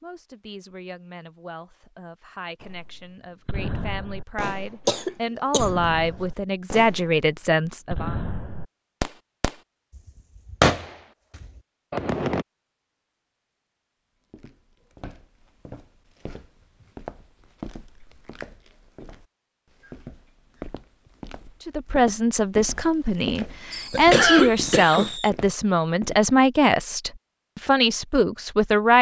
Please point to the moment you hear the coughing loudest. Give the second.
24 s.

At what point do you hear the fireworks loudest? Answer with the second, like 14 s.
11 s.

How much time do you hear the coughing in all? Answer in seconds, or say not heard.
2 s.